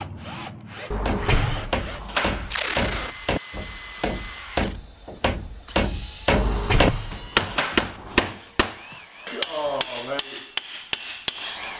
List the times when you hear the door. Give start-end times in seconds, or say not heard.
0.9-2.5, 6.3-8.3.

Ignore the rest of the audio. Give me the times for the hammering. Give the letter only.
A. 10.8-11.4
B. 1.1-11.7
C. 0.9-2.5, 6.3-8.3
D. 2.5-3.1
B.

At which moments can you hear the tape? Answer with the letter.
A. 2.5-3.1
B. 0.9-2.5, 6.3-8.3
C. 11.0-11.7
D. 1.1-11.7
A.